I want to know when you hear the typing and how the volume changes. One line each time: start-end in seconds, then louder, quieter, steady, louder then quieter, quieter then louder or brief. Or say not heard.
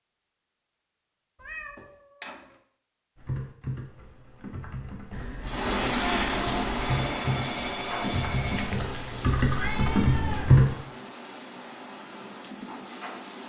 3.1-10.8 louder.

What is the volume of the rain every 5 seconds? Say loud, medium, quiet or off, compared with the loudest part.
off, loud, medium.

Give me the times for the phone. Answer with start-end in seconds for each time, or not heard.
6.8-8.8.